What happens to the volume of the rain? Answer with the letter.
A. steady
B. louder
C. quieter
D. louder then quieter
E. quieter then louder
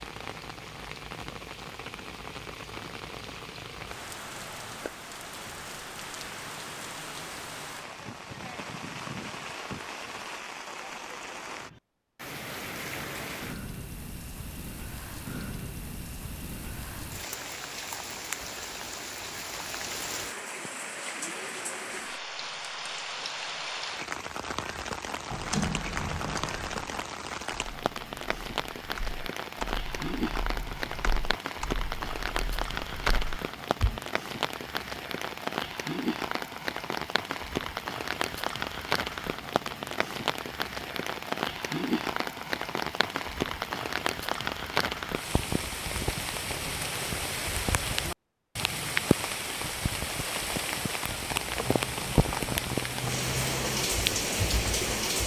B.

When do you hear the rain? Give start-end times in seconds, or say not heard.
0.0-55.2.